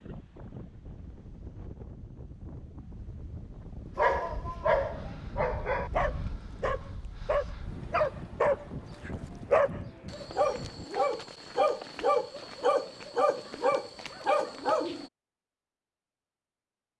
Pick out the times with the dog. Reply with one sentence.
The dog can be heard from 4.0 to 15.1 s.